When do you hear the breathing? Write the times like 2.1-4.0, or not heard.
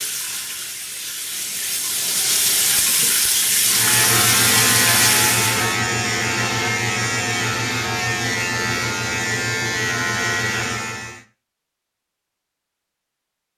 not heard.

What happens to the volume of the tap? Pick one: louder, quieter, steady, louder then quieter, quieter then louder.
louder.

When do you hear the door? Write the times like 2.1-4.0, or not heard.
not heard.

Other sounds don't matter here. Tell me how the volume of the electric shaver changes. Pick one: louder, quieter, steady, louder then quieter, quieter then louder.
steady.